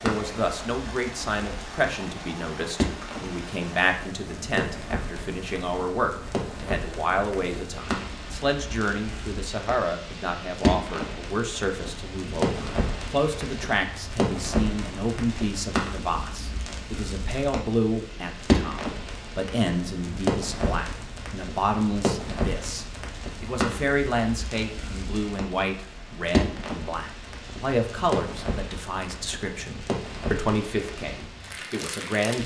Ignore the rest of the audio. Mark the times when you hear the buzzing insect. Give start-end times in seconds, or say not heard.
not heard.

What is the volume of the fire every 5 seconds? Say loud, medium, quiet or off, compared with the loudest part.
loud, medium, loud, loud, loud, loud, medium.